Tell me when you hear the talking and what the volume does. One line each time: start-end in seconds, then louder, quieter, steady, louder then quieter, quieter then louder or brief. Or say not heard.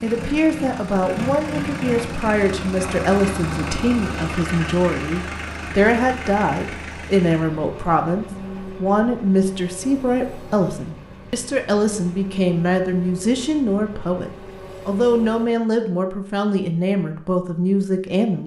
0.0-18.4 steady.